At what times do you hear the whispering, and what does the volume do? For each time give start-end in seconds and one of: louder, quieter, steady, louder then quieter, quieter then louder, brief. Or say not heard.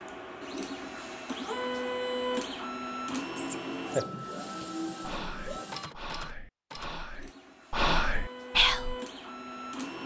3.1-8.9 louder.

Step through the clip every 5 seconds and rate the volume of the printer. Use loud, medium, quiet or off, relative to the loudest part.
loud, medium.